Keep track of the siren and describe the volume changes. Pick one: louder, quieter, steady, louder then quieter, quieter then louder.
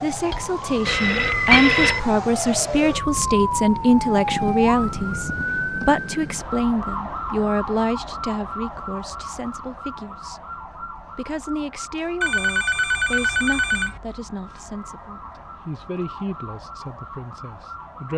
quieter.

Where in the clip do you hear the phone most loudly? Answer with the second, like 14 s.
2 s.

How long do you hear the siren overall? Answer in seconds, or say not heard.
18 s.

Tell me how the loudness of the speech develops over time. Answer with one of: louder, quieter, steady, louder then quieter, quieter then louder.
quieter.